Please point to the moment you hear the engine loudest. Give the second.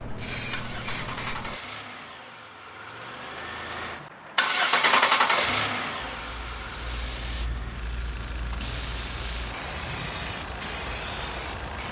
5 s.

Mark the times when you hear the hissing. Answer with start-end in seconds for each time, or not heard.
0.0-1.6, 6.0-11.8.